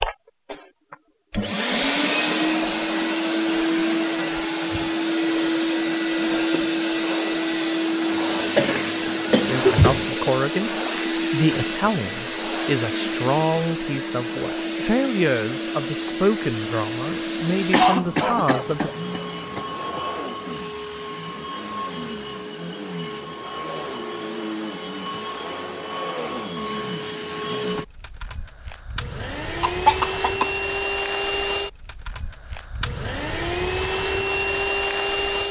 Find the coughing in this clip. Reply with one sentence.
You can hear the coughing from 8.1 to 10.1 s, from 17.7 to 20.0 s and from 29.6 to 30.5 s.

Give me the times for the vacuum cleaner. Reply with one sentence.
You can hear the vacuum cleaner from 0.0 to 35.4 s.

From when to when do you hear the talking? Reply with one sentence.
You can hear the talking from 9.4 to 18.9 s.